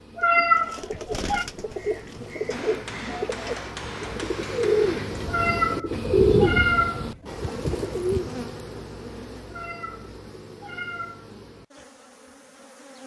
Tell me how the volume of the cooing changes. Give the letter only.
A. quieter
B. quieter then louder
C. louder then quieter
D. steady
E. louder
C.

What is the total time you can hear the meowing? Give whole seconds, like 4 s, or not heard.
5 s.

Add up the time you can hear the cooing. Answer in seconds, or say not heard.
8 s.